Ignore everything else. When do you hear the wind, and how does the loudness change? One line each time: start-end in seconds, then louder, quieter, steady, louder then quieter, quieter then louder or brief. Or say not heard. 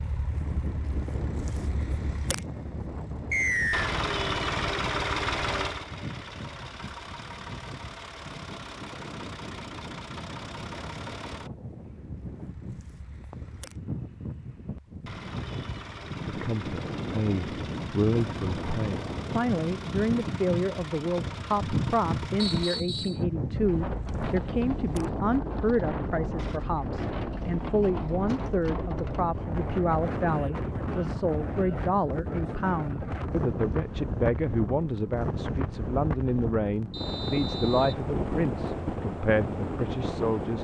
0.0-40.5 louder.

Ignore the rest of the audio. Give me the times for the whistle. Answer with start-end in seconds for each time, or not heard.
3.3-3.9, 22.4-23.2, 36.9-38.0.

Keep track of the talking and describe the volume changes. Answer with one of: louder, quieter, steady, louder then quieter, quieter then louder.
steady.